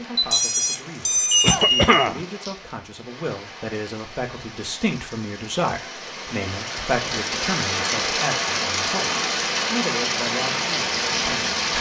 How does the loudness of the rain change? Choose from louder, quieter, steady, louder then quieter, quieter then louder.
louder.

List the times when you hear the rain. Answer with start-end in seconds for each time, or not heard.
0.0-11.7.